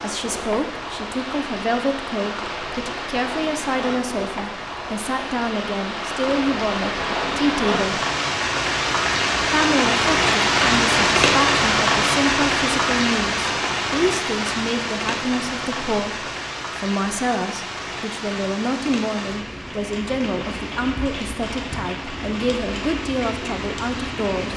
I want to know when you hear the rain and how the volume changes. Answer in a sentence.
You can hear the rain from 0.0 to 24.5 s, getting louder then quieter.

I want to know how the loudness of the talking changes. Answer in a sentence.
The loudness of the talking stays about the same.